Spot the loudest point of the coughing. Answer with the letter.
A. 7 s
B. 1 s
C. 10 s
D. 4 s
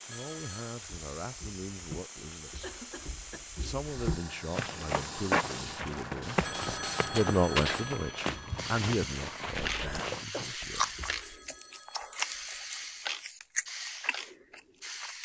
C.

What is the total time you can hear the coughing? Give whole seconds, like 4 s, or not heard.
2 s.